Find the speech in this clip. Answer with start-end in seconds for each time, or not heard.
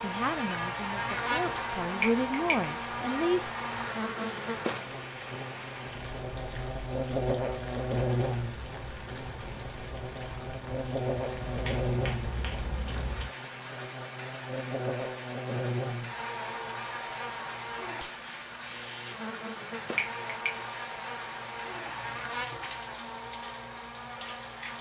0.0-3.5.